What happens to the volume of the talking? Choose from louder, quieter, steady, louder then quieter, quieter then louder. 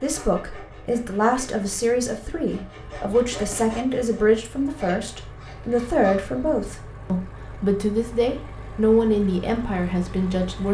steady.